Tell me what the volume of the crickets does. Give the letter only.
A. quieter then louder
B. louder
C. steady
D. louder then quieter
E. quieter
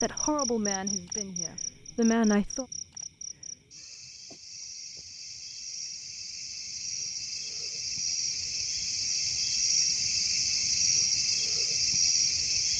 A.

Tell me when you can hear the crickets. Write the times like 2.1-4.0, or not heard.
0.0-12.7.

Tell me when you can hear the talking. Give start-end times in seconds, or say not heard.
0.0-2.6.